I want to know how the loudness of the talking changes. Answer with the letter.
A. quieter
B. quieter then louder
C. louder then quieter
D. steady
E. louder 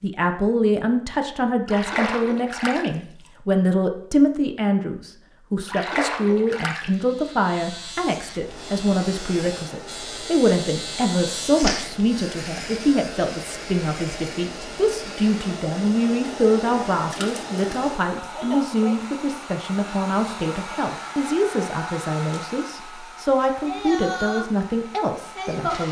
D.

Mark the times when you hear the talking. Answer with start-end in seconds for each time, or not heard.
0.0-25.8.